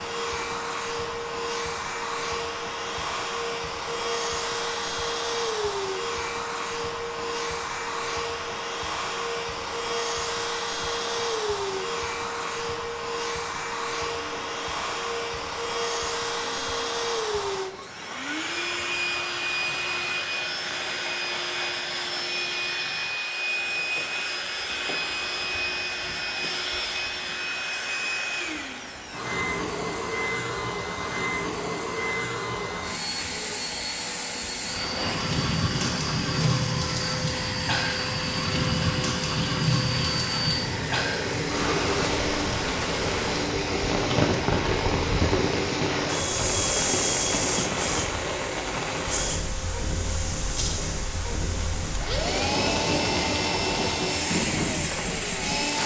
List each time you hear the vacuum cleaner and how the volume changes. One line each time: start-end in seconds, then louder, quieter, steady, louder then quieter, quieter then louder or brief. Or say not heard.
0.0-55.8 steady.